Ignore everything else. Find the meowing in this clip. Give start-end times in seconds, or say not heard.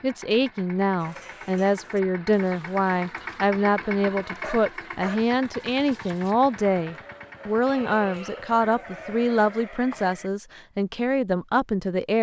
not heard.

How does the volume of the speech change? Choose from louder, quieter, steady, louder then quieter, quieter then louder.
steady.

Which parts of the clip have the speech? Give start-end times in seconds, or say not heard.
0.0-12.1.